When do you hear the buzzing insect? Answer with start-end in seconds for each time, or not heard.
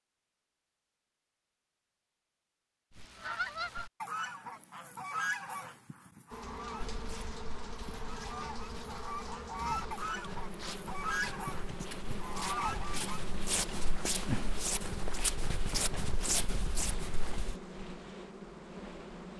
6.3-19.3.